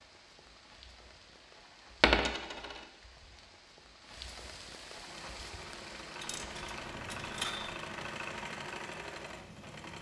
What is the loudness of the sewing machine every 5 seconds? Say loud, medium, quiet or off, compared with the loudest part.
off, loud.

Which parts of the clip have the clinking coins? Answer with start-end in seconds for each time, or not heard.
2.0-2.8, 6.2-7.8.